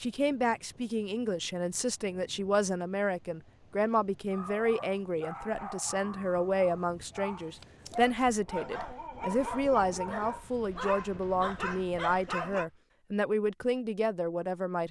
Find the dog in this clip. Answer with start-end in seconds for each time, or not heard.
4.3-12.7.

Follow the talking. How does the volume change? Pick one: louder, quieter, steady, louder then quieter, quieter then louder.
steady.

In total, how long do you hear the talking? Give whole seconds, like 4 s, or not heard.
15 s.